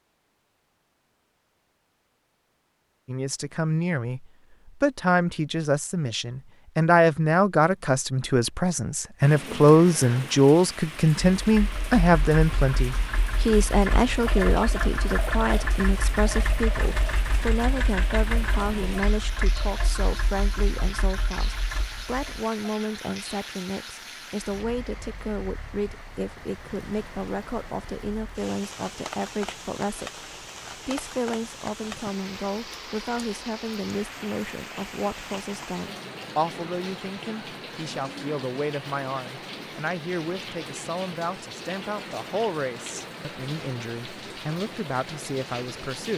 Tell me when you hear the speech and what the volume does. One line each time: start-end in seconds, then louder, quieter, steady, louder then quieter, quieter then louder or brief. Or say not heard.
3.0-46.1 quieter.